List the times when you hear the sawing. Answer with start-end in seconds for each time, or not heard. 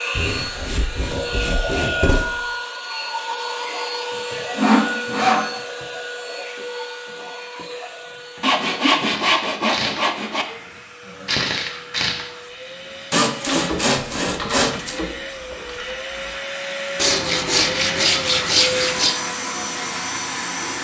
0.1-2.2, 4.5-5.5, 8.4-10.4, 13.1-15.0, 16.9-19.1.